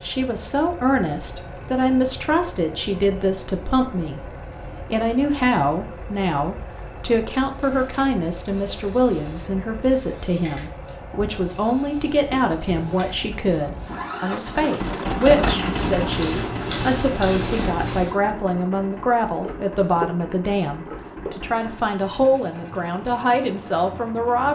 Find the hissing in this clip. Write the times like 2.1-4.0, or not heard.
7.5-18.1.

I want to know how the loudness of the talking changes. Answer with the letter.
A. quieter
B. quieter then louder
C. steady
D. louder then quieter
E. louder
C.